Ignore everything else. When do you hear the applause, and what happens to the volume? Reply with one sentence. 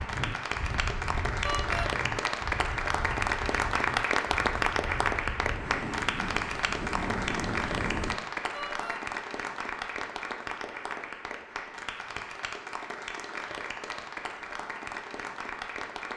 The applause can be heard from 0.0 to 16.1 s, getting quieter.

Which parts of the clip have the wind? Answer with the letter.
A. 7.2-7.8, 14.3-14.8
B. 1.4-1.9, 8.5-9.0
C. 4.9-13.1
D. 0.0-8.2
D.